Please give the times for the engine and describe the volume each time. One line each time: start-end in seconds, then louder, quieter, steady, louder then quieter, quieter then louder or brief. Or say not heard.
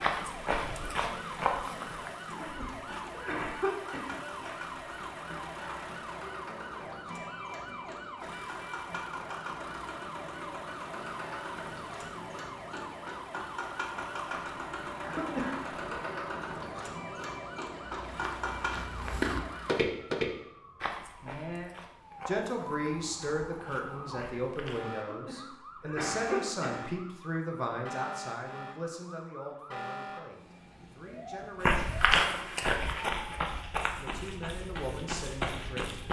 0.1-18.7 louder.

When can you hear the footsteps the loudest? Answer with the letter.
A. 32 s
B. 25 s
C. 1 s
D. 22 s
A.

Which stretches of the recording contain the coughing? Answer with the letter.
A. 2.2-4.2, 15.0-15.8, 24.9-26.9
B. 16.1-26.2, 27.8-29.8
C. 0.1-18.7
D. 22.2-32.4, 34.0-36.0
A.